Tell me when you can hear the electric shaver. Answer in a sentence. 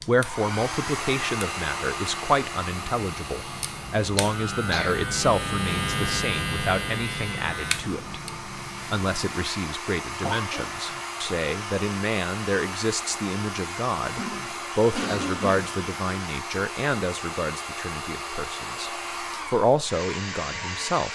The electric shaver can be heard from 0.0 to 9.4 s.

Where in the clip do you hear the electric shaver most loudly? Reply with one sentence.
The loudest moment of the electric shaver is at 6 seconds.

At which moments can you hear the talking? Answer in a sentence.
You can hear the talking from 0.1 to 8.2 s and from 8.9 to 21.1 s.